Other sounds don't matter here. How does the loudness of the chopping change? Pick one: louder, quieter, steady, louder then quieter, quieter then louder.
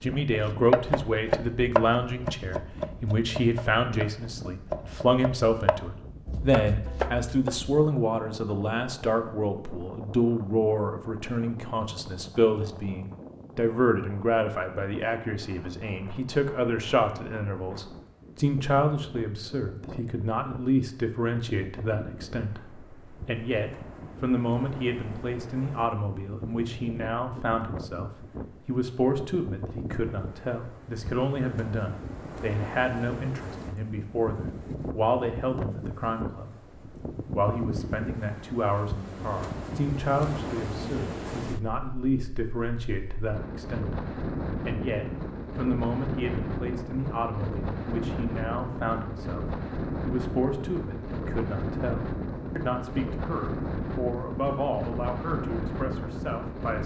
quieter.